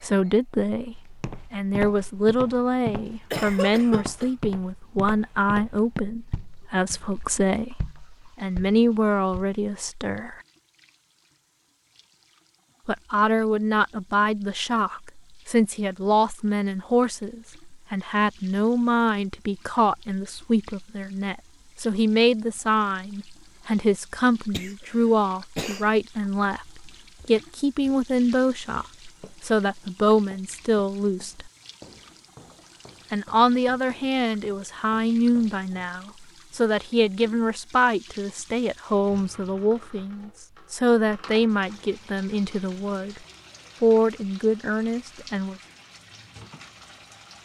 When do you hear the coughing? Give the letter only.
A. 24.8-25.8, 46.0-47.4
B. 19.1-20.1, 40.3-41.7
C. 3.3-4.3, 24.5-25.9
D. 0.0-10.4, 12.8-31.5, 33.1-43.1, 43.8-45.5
C.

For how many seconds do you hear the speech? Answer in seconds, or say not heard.
41 s.